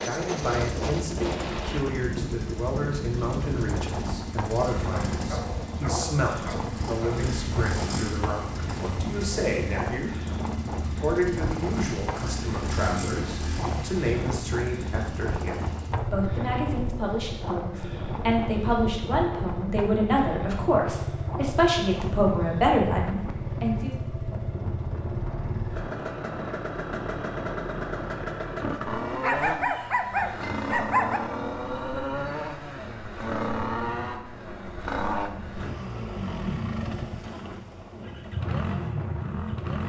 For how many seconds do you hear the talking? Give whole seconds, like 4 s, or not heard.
24 s.